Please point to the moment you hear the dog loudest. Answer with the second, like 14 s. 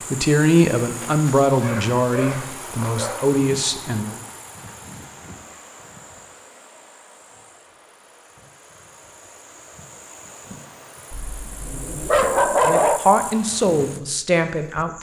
13 s.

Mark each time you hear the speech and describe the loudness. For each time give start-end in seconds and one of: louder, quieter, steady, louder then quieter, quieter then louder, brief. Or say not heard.
0.1-4.2 quieter then louder
12.7-14.9 brief.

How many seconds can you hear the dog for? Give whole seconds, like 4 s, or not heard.
4 s.